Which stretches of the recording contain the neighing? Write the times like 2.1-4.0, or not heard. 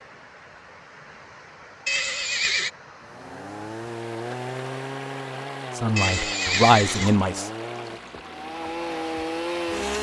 1.9-2.7, 6.0-7.2.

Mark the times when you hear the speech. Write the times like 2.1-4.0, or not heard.
5.8-7.5.